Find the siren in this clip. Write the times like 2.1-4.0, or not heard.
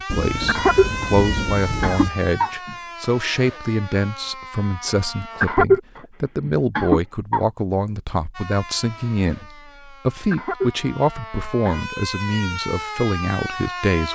0.0-5.5, 8.3-14.1.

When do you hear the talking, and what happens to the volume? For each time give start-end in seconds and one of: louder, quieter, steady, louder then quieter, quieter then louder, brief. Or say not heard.
0.0-14.1 steady.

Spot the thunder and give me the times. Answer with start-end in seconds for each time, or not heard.
0.1-2.1.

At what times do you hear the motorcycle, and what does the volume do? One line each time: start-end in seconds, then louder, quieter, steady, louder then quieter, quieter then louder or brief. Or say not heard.
not heard.